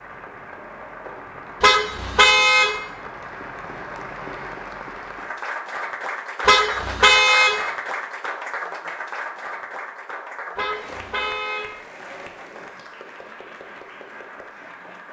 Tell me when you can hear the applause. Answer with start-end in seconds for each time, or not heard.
0.0-15.0.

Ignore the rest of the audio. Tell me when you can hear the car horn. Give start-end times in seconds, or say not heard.
1.6-2.8, 6.5-7.6, 10.6-11.7.